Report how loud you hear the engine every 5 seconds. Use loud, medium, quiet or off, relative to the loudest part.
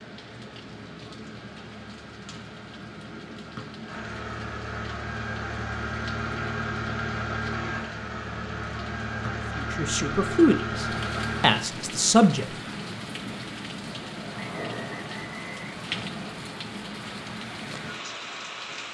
medium, loud, loud, off.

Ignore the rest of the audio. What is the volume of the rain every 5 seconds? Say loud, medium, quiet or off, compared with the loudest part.
medium, medium, loud, loud.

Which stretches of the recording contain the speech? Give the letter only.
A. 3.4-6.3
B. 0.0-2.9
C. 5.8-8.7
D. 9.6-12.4
D.